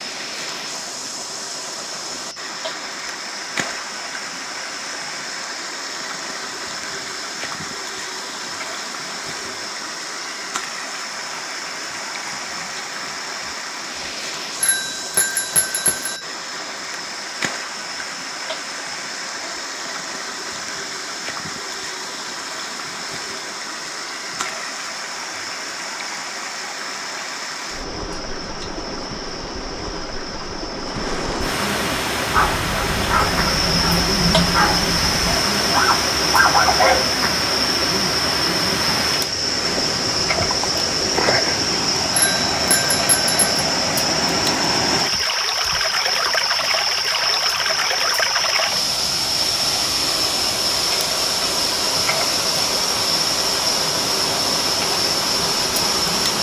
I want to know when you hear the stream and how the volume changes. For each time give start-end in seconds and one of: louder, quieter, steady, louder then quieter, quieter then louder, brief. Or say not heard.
0.0-56.3 louder.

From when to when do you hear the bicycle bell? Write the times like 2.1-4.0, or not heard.
14.6-16.2, 42.1-43.6.